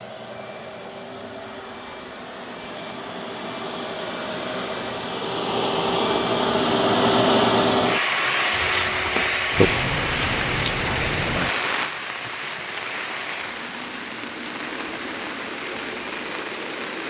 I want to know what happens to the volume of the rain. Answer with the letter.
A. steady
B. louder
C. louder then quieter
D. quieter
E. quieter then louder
D.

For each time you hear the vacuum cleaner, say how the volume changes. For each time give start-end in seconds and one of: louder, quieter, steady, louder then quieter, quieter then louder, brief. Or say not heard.
0.0-17.0 louder then quieter.